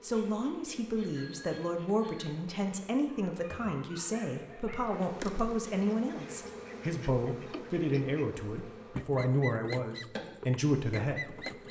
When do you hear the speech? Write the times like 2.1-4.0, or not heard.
0.0-11.4.